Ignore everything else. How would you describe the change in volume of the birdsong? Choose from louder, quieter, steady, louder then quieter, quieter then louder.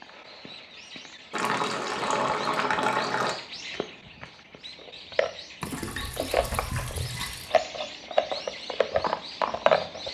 louder.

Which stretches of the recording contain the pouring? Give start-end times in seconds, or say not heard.
1.3-3.4, 5.6-7.5.